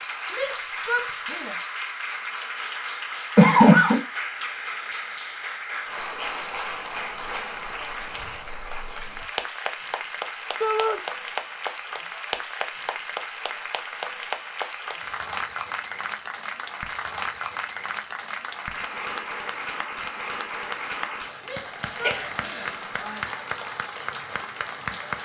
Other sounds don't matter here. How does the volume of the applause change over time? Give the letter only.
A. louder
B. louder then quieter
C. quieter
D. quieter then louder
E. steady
E.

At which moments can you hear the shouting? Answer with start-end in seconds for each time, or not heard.
0.3-1.6, 10.6-11.0, 21.4-23.2.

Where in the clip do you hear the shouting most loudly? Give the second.
11 s.